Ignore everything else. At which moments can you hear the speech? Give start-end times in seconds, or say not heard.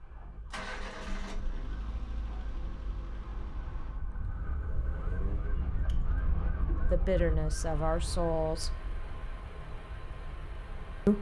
6.9-8.7.